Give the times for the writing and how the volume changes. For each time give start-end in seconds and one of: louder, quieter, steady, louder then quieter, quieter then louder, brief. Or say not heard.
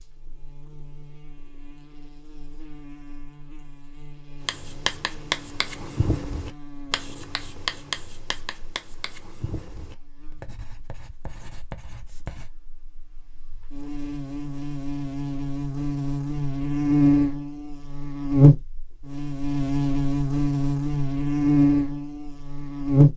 4.4-12.5 quieter.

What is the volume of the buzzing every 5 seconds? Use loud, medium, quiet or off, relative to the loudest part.
quiet, quiet, quiet, loud, loud.